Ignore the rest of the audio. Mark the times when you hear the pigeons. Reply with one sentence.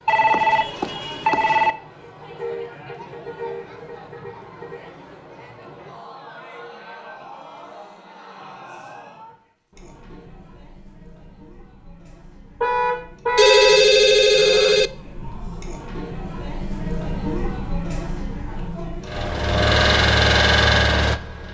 You can't hear the pigeons here.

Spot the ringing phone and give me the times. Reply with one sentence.
You can hear the ringing phone from 0.1 to 1.8 s and from 13.3 to 14.9 s.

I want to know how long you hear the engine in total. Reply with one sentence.
You can hear the engine for 2 seconds altogether.